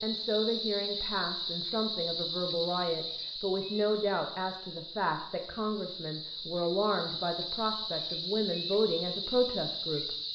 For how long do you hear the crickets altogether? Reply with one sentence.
The crickets can be heard for 10 seconds in total.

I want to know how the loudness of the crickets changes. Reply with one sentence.
The loudness of the crickets goes down, then up.